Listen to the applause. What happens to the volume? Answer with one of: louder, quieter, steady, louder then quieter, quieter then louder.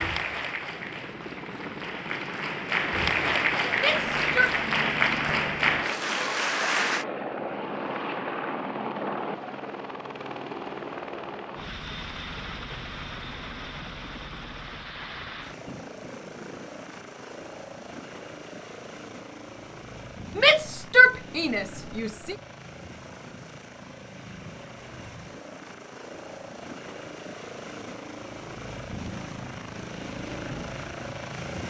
louder.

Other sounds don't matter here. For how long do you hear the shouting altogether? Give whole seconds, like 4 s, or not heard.
3 s.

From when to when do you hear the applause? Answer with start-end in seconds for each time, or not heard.
0.0-7.0.